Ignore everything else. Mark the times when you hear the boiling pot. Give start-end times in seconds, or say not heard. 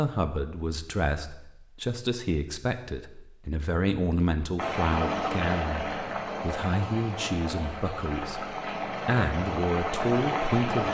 4.5-10.8.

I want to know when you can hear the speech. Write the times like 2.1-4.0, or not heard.
0.0-10.8.